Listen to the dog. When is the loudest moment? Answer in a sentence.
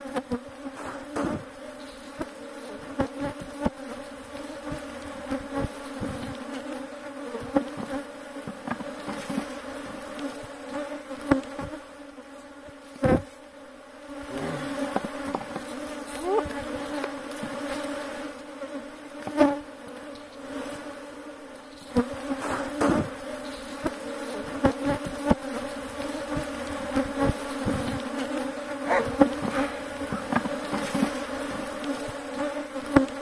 The loudest moment of the dog is at 29 seconds.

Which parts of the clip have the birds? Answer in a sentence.
The birds can't be heard in this clip.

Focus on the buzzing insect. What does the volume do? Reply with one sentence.
The volume of the buzzing insect goes up.